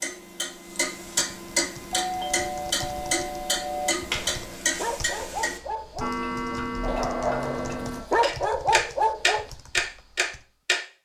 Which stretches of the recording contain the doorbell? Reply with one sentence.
The doorbell can be heard from 1.9 to 4.0 s.